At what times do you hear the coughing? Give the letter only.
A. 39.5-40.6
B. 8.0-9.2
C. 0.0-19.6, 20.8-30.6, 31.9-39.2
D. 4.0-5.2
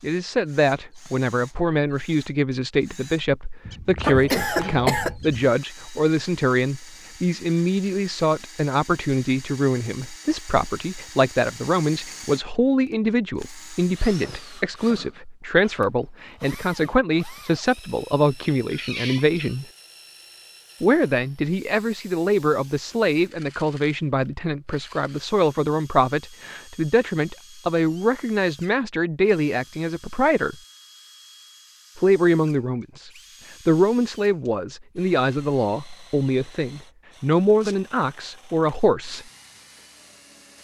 D.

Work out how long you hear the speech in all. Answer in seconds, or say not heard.
37 s.